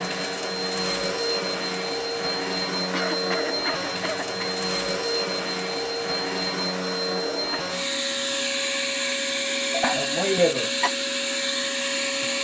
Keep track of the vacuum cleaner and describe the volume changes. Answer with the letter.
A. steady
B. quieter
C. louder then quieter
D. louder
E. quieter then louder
A.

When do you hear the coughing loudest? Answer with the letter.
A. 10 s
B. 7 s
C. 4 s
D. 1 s
A.